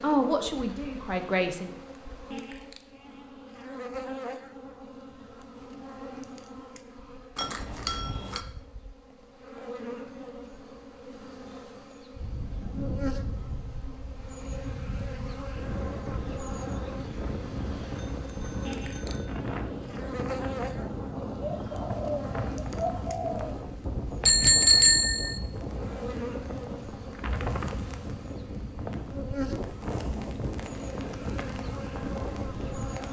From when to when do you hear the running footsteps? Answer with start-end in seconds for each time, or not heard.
not heard.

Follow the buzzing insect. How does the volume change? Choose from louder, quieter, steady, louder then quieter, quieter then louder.
steady.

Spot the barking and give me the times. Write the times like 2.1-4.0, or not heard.
not heard.